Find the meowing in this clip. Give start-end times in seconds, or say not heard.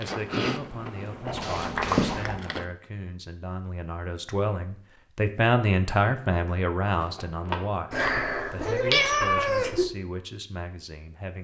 1.2-2.4, 7.9-9.8.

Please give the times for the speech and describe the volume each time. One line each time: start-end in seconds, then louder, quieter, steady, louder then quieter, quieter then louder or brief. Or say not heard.
0.0-11.3 louder then quieter.